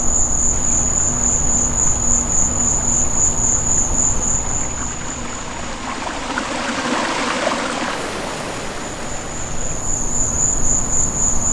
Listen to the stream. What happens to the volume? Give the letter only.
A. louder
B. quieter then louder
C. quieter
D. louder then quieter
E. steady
D.